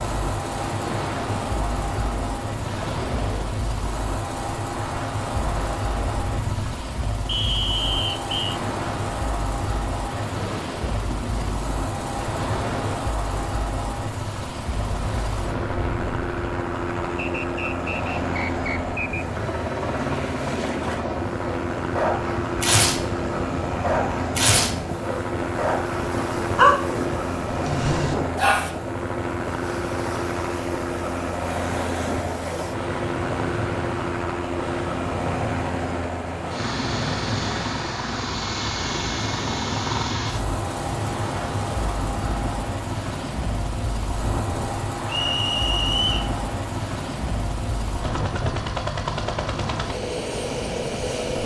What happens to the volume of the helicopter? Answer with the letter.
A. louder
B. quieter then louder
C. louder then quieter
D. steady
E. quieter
D.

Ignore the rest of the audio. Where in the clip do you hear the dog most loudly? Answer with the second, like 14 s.
27 s.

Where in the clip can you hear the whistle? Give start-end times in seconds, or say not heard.
7.2-8.6, 17.1-19.2, 45.0-46.3.